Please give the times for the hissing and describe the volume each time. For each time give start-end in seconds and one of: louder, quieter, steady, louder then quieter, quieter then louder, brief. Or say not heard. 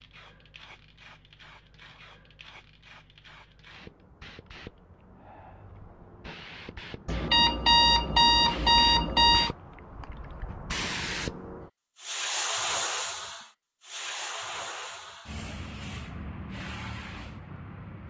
0.0-18.0 louder then quieter.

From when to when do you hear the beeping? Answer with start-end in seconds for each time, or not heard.
7.0-9.5.